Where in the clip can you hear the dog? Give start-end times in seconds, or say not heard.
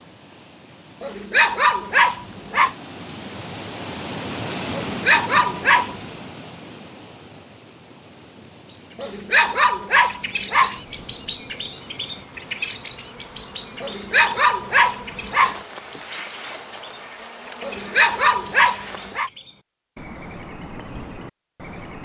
1.0-2.8, 4.7-6.0, 8.9-10.8, 13.8-15.6, 17.6-19.3.